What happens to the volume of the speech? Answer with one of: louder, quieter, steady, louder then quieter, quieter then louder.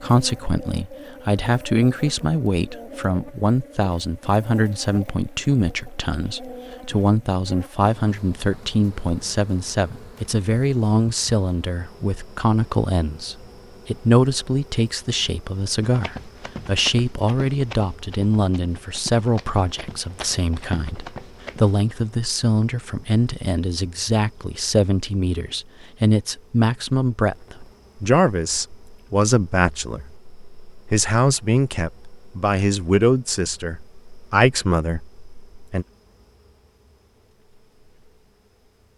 steady.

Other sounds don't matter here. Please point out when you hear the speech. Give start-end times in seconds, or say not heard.
0.0-35.9.